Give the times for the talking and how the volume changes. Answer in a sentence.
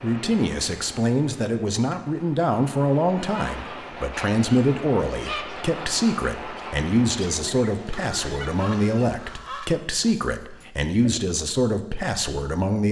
You can hear the talking from 0.0 to 12.8 s, at a steady volume.